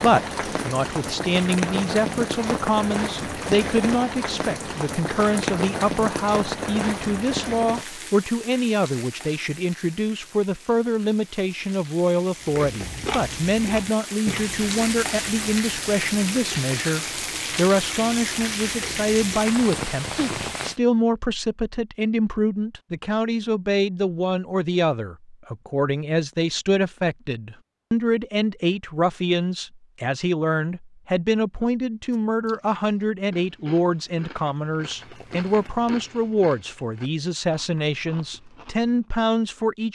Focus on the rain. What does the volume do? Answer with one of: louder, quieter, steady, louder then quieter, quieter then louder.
quieter then louder.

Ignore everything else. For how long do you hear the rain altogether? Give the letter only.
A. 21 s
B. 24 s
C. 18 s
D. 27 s
A.